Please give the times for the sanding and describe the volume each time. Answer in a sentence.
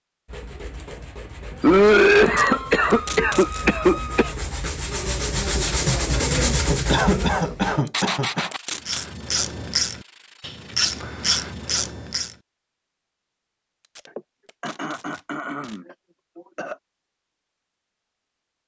You can hear the sanding from 0.2 to 11.8 s, getting louder then quieter.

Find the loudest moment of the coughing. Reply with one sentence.
The volume of the coughing peaks at 2 seconds.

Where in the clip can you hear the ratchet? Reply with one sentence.
The ratchet can be heard from 8.8 to 12.3 s.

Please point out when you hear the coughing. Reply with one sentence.
The coughing can be heard from 1.6 to 4.3 s, from 6.8 to 8.4 s and from 14.1 to 16.8 s.